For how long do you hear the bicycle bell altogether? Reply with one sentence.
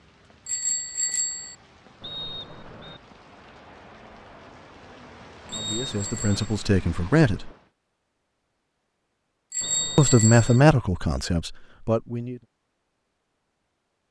The bicycle bell can be heard for 3 seconds in total.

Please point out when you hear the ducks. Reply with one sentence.
The ducks can't be heard in this clip.